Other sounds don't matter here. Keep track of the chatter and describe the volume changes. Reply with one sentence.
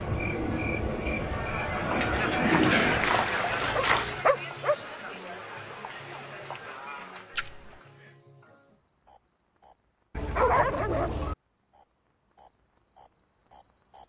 The volume of the chatter goes up, then down.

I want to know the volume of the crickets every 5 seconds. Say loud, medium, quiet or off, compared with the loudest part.
loud, medium, quiet.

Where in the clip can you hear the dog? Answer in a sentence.
The dog can be heard from 3.8 to 4.8 s and from 10.2 to 11.3 s.